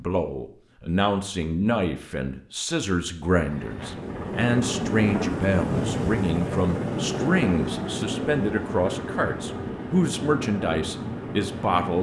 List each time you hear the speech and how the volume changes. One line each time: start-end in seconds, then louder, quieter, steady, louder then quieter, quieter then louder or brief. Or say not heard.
0.0-11.9 steady.